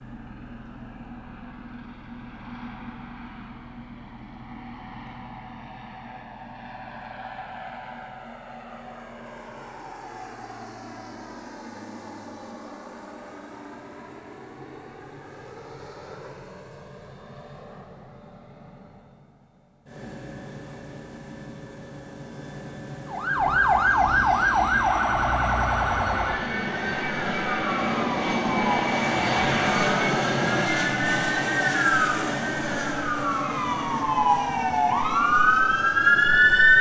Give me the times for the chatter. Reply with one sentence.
You can't hear the chatter here.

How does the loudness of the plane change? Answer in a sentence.
The loudness of the plane goes up.